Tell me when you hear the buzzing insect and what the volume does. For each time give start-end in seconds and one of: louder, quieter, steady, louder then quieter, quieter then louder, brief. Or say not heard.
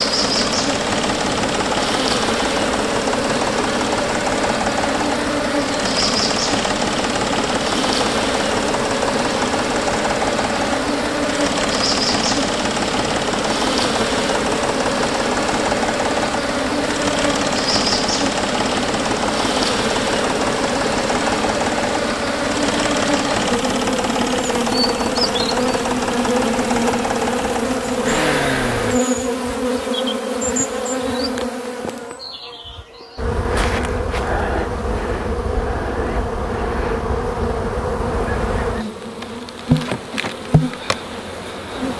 0.0-41.9 steady.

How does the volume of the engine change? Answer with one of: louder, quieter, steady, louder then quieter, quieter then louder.
steady.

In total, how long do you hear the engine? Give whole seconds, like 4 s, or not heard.
29 s.